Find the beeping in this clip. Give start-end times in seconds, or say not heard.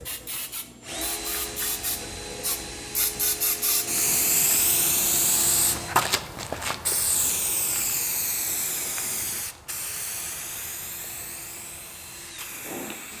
not heard.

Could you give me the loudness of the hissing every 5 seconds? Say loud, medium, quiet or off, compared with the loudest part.
loud, loud, medium.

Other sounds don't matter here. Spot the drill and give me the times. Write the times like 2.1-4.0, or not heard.
0.0-6.0, 9.8-13.1.